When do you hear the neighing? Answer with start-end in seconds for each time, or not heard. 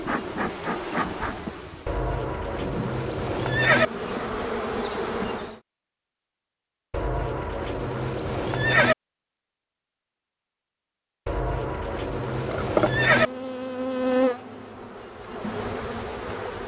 1.9-3.9, 6.9-8.9, 11.2-13.3.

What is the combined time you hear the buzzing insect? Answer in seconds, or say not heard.
10 s.